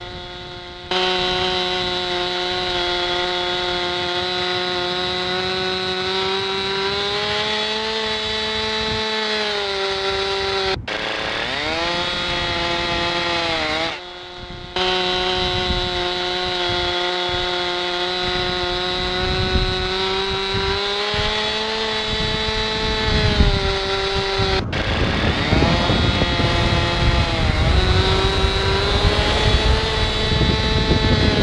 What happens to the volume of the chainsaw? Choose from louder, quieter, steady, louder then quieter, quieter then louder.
steady.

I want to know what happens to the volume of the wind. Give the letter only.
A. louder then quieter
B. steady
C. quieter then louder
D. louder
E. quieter
D.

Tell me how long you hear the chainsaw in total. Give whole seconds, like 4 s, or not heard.
31 s.